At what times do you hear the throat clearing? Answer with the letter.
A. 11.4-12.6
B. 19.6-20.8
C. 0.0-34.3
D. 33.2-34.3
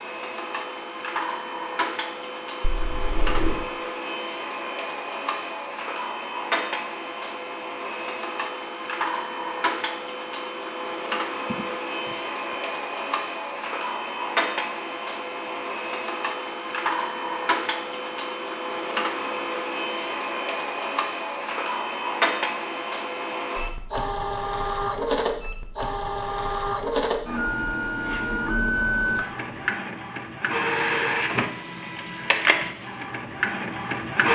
A.